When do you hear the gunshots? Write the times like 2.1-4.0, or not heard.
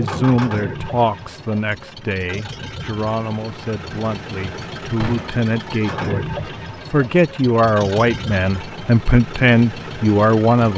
5.0-5.5.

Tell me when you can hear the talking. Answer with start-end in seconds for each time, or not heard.
0.0-10.7.